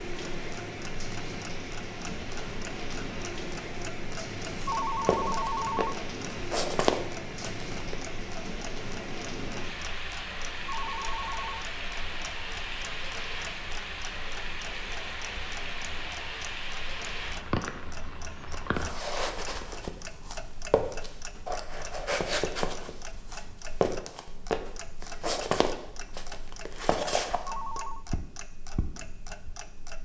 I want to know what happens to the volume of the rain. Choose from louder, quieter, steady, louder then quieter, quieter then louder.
steady.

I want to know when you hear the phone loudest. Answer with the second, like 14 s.
5 s.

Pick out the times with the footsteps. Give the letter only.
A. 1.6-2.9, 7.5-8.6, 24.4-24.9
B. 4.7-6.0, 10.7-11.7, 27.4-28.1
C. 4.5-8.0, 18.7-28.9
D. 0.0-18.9
C.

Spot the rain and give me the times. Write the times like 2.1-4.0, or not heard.
0.0-18.9.